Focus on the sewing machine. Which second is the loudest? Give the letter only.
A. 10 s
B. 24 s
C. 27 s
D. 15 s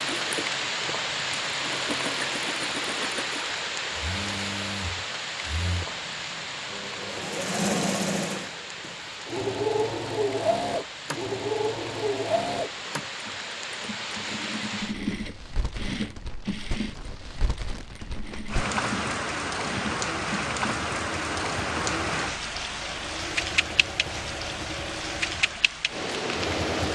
A.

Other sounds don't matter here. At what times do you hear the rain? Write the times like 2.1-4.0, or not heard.
0.0-26.8.